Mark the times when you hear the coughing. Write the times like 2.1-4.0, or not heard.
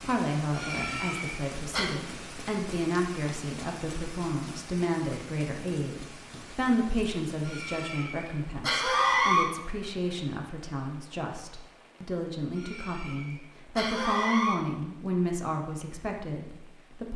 0.5-1.9, 7.5-9.4, 12.6-14.6.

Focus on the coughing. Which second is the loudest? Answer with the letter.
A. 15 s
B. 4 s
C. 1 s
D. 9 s
D.